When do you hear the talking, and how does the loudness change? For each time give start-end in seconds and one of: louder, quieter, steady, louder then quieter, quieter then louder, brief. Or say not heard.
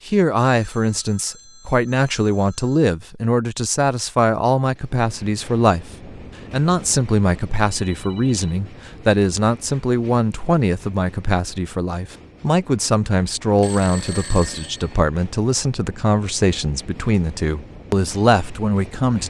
0.1-19.2 steady.